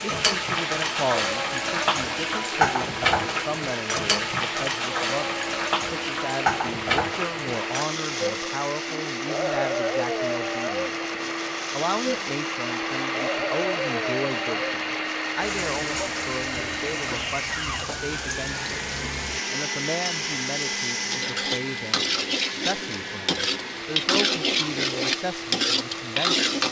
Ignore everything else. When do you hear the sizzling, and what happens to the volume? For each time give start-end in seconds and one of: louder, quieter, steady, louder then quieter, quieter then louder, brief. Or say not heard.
0.0-26.6 quieter then louder.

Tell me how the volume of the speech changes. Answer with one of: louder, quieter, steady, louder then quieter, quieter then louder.
steady.